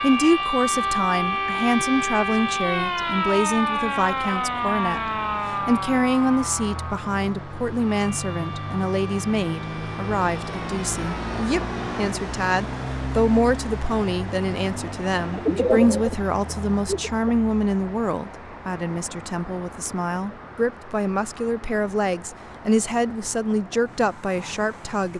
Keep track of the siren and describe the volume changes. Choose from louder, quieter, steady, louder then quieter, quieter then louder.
quieter.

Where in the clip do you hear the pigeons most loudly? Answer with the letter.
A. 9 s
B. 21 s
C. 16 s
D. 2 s
C.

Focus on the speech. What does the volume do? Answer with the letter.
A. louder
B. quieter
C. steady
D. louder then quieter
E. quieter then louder
C.